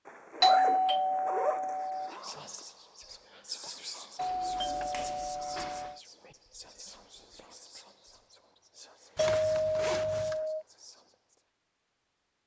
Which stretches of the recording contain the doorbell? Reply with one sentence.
The doorbell can be heard from 0.4 to 2.1 s, from 4.2 to 6.0 s and from 9.2 to 10.7 s.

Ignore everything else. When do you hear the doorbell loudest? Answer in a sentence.
The loudest moment of the doorbell is at 1 second.